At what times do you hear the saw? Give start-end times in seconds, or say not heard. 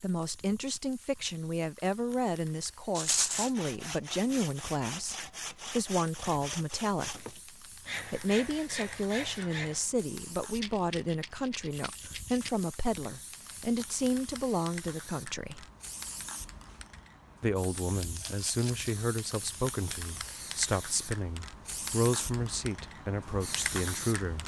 3.1-9.8.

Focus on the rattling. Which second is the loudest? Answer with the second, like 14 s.
3 s.